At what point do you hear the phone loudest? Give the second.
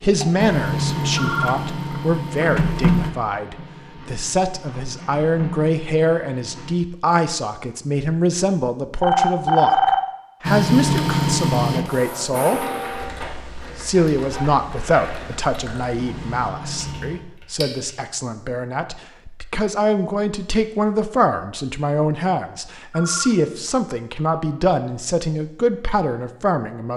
10 s.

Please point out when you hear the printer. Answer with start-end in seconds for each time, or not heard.
0.0-6.8, 10.4-17.2.